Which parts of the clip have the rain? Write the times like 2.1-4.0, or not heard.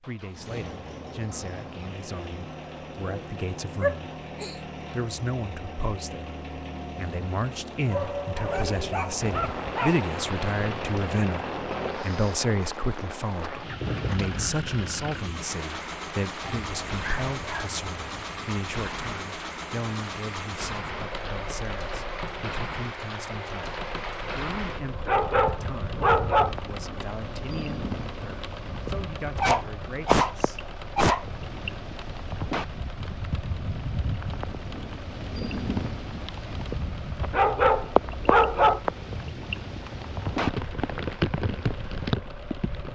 9.2-42.8.